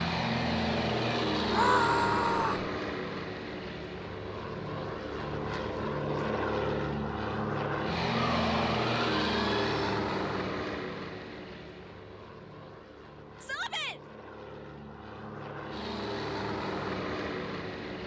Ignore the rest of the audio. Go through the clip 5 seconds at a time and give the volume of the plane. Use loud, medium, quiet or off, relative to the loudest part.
loud, loud, medium, medium.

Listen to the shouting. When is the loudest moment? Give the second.
2 s.